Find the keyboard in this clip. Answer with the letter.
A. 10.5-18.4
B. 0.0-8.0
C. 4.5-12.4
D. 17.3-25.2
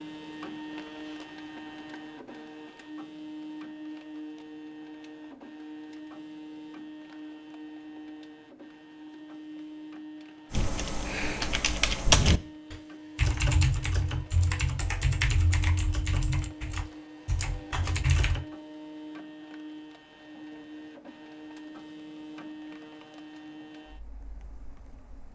A.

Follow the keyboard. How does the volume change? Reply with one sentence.
The loudness of the keyboard goes down.